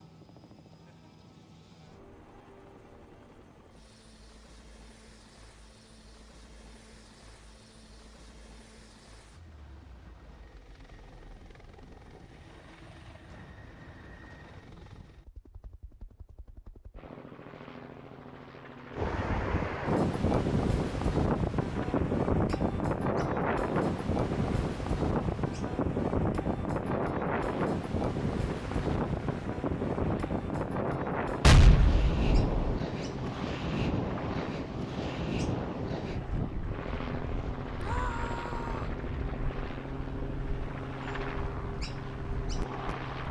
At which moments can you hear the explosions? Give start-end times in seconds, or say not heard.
31.4-32.8.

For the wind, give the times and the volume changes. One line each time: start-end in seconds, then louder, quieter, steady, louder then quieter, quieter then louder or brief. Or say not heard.
18.9-43.1 quieter.